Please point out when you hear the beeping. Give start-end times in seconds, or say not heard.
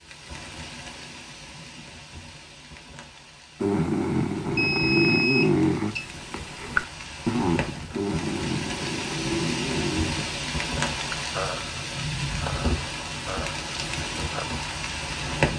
4.5-6.1.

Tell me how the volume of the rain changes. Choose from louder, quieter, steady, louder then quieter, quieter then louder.
louder.